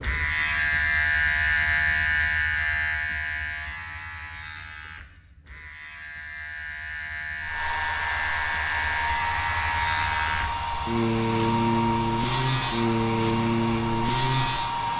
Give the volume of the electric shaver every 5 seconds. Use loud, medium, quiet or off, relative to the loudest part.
loud, medium, loud.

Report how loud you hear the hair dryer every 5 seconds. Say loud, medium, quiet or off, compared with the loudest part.
off, loud, loud.